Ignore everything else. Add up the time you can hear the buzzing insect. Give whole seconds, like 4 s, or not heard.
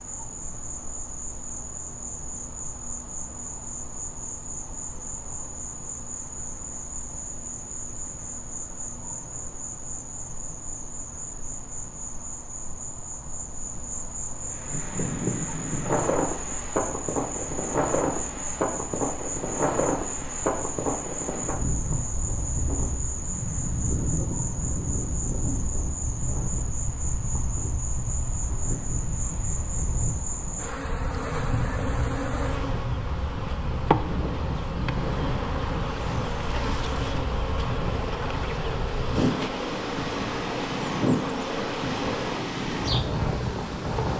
44 s.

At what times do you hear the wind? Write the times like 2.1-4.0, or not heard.
14.6-44.1.